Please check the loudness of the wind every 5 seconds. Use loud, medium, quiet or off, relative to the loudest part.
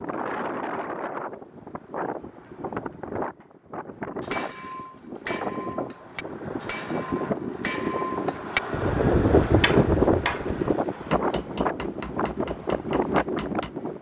medium, loud, loud.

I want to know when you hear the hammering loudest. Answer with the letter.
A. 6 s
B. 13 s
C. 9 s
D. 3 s
C.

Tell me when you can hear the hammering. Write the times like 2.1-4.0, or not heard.
3.9-13.7.